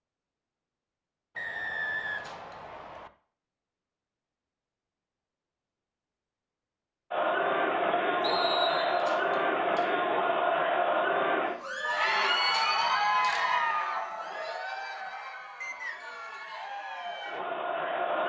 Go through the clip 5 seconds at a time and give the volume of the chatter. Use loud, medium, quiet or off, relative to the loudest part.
off, loud, loud, medium.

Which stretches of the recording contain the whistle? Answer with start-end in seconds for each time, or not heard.
1.4-3.1, 8.2-9.1, 15.6-16.4.